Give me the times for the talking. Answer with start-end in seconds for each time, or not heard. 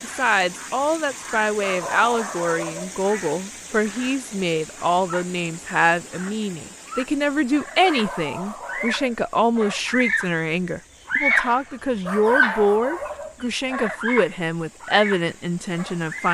0.0-16.2.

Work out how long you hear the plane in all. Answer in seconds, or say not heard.
not heard.